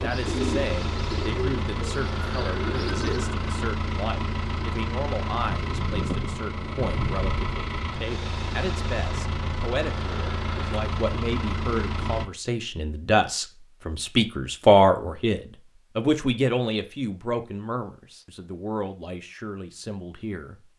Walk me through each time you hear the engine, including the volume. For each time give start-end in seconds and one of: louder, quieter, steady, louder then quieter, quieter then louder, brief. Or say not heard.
0.0-12.2 steady.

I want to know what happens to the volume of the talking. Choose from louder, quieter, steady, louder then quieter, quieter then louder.
louder then quieter.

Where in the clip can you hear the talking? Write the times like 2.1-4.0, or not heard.
0.0-20.6.